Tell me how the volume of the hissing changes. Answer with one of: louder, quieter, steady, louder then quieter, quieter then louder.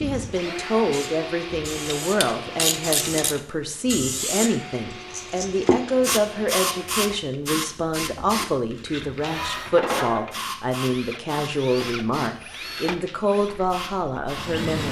louder then quieter.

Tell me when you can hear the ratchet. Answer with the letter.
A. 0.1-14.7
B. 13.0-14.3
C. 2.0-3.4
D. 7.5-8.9
C.